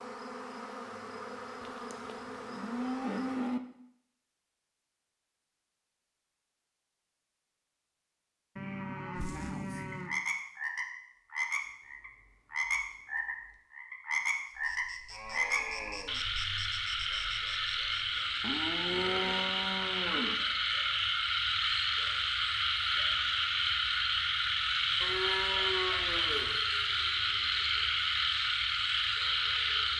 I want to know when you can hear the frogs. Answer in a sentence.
You can hear the frogs from 9.9 to 29.9 s.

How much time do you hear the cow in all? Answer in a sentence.
The cow can be heard for 8 seconds in total.